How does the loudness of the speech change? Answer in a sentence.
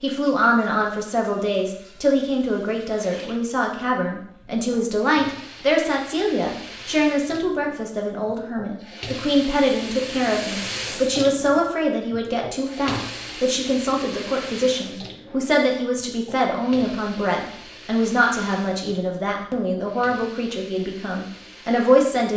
The volume of the speech stays about the same.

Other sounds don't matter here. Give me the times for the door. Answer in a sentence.
The door can't be heard in this clip.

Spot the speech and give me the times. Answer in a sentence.
The speech can be heard from 0.0 to 22.3 s.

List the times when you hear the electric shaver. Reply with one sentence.
You can't hear the electric shaver here.